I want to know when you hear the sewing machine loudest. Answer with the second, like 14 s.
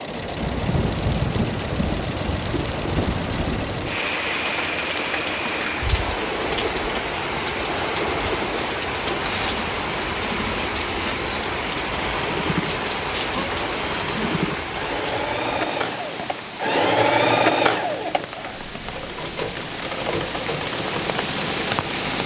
17 s.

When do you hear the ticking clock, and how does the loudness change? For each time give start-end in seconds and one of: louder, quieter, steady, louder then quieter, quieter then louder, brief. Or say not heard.
not heard.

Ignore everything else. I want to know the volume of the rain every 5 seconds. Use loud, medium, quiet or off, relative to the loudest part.
loud, loud, loud, medium, loud.